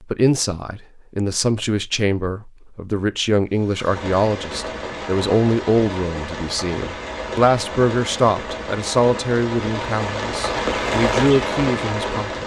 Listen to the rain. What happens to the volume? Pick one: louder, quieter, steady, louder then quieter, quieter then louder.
louder.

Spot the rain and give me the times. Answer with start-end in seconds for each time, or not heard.
3.5-12.4.